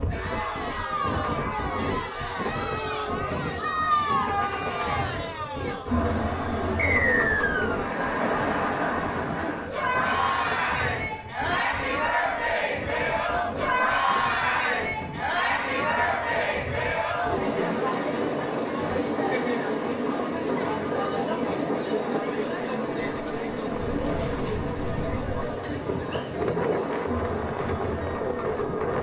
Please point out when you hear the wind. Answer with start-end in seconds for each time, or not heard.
0.0-28.9.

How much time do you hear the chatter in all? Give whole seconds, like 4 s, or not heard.
29 s.